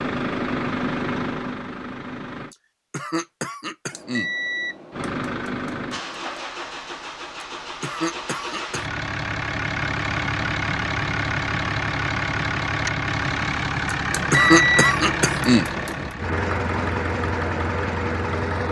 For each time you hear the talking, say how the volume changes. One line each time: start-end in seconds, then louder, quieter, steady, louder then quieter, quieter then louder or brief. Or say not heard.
not heard.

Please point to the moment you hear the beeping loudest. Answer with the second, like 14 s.
15 s.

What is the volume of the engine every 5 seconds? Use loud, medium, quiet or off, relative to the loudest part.
loud, medium, loud, loud.